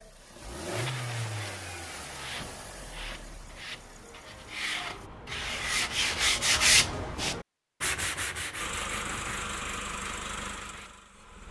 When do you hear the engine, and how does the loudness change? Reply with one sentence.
You can hear the engine from 0.0 to 5.0 s, getting quieter; and briefly from 8.6 to 11.4 s.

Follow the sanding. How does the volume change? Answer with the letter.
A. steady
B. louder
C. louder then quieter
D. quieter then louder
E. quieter
C.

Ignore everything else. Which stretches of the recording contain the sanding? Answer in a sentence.
The sanding can be heard from 0.7 to 10.9 s.